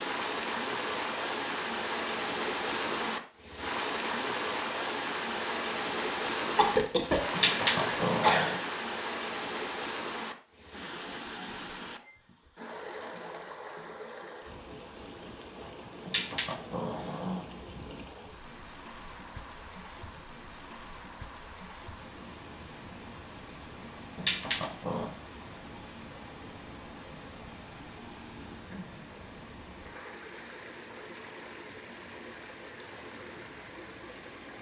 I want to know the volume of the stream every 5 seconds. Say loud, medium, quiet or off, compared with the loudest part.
loud, loud, medium, quiet, quiet, quiet, quiet.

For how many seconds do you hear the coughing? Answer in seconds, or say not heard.
2 s.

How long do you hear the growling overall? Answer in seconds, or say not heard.
4 s.